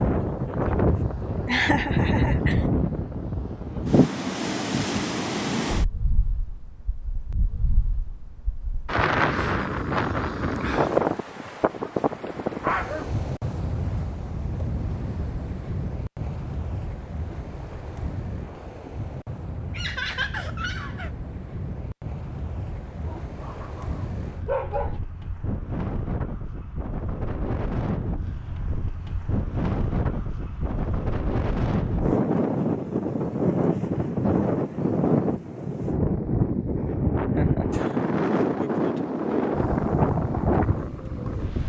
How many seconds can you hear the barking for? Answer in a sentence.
You can hear the barking for 4 seconds altogether.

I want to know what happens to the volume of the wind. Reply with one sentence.
The loudness of the wind goes down, then up.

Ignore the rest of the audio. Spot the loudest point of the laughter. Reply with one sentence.
The loudest moment of the laughter is at 2 seconds.